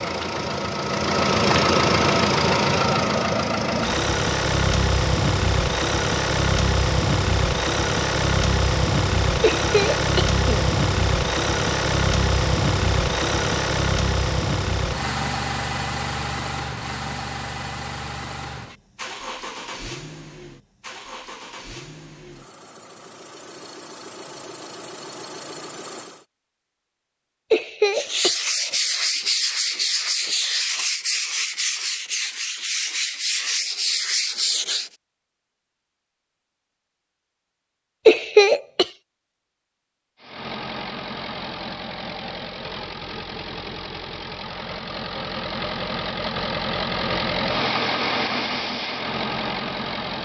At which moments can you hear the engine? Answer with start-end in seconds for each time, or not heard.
0.0-26.2, 40.2-50.2.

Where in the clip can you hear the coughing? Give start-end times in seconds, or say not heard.
9.4-10.7, 27.5-28.4, 38.0-38.9.